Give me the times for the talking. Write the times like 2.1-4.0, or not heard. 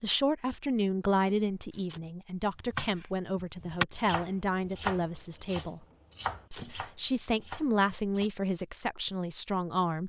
0.0-5.8, 6.5-10.0.